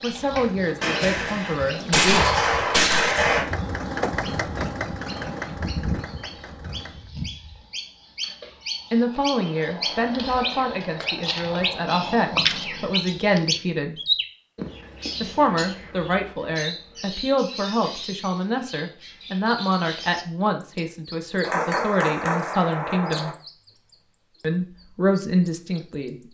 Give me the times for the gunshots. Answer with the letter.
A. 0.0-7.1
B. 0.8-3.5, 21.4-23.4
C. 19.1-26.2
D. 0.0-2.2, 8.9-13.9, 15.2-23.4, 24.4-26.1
B.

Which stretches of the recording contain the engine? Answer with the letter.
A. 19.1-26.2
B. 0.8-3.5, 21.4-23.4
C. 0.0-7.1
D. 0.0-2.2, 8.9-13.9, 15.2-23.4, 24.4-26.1
C.